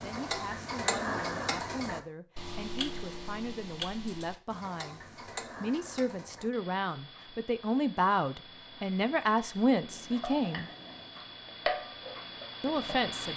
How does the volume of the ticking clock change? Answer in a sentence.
The volume of the ticking clock goes down, then up.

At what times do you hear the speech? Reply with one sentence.
The speech can be heard from 0.0 to 10.7 s and from 12.6 to 13.3 s.